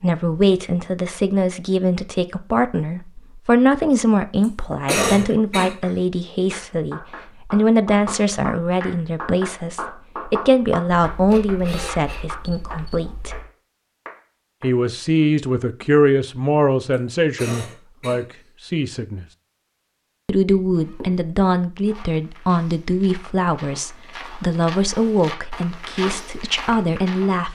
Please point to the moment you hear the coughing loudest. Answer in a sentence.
The volume of the coughing peaks at 5 seconds.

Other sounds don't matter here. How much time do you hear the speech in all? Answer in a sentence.
The speech can be heard for 25 seconds in total.